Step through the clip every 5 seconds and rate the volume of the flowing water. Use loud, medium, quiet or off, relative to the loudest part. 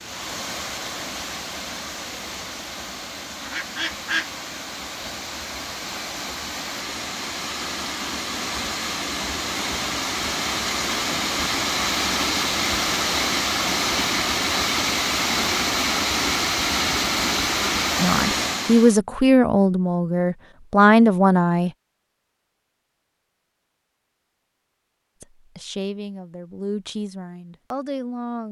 medium, medium, loud, loud, off, off.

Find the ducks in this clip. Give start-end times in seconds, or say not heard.
3.4-4.3.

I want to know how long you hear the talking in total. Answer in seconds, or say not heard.
7 s.